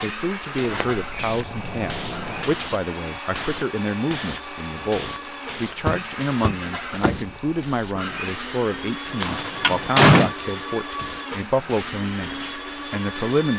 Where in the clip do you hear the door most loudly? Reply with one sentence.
The loudest moment of the door is at 10 seconds.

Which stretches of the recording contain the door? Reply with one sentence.
The door can be heard from 0.6 to 2.5 s, from 5.8 to 7.2 s and from 9.2 to 10.3 s.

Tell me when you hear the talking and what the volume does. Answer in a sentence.
You can hear the talking from 0.0 to 13.5 s, at a steady volume.